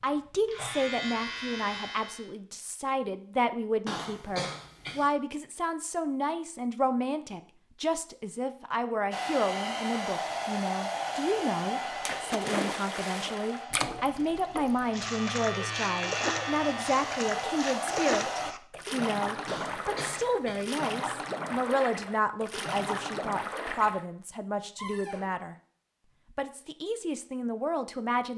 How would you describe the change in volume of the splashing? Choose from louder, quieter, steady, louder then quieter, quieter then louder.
steady.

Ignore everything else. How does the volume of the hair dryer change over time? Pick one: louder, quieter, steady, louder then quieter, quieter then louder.
quieter then louder.